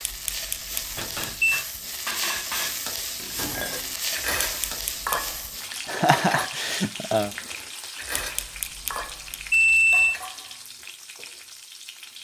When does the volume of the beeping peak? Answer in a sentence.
The volume of the beeping peaks at 10 seconds.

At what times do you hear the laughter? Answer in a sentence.
The laughter can be heard from 5.8 to 7.3 s.